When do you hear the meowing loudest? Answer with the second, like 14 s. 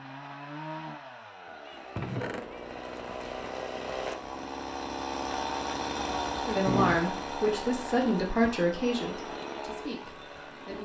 7 s.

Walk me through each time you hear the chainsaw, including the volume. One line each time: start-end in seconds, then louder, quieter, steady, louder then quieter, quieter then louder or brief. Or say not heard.
0.0-10.8 louder then quieter.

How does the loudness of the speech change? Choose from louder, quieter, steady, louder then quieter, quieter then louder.
quieter.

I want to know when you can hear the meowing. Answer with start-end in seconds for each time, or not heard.
1.4-2.6, 6.0-7.0.